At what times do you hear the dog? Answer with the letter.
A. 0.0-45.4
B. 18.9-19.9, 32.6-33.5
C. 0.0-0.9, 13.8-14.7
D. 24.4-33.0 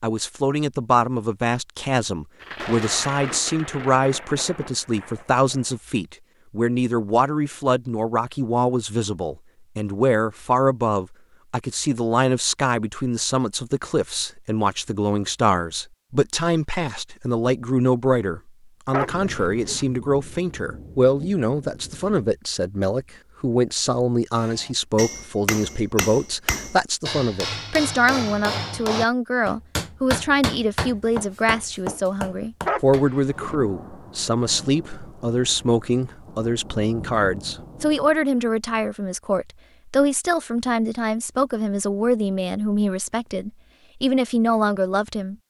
B.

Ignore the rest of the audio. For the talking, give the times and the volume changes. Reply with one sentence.
You can hear the talking from 0.0 to 45.4 s, at a steady volume.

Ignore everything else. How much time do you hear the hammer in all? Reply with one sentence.
The hammer can be heard for 9 seconds in total.